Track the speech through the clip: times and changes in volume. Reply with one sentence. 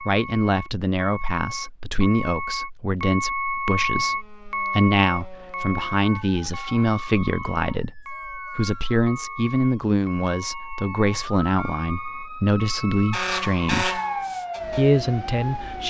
You can hear the speech from 0.0 to 14.0 s, at a steady volume; and briefly from 14.8 to 15.8 s.